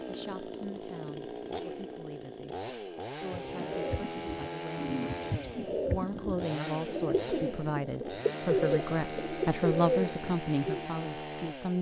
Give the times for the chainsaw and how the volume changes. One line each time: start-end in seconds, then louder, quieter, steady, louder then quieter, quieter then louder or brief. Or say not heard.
0.0-11.7 steady.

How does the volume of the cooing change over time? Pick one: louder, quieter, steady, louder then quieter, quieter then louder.
louder.